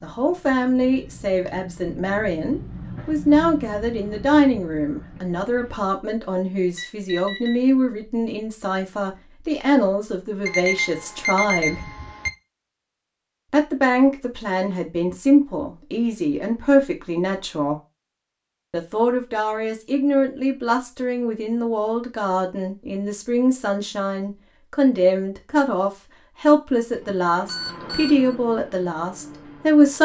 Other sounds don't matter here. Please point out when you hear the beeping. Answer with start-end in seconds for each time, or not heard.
6.8-7.5, 10.4-12.3, 26.9-28.4.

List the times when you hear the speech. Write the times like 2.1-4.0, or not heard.
0.0-11.9, 13.5-17.8, 18.7-30.0.